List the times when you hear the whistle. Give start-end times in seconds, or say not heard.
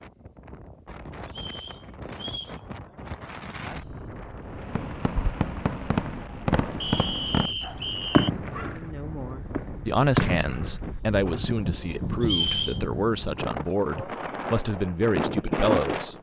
1.3-2.5, 6.8-8.3, 12.2-12.8.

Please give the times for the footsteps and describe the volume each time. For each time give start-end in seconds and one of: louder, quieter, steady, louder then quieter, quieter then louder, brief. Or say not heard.
not heard.